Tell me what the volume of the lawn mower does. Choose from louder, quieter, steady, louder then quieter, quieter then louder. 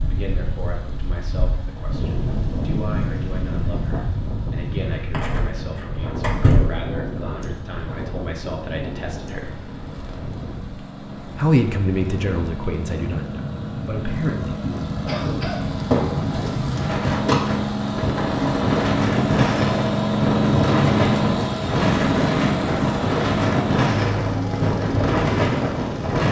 louder.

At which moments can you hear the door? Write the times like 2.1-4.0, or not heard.
5.1-6.7, 15.9-17.4.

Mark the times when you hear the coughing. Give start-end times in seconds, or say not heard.
15.1-15.7.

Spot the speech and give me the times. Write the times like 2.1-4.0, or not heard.
0.1-9.6, 11.3-14.7.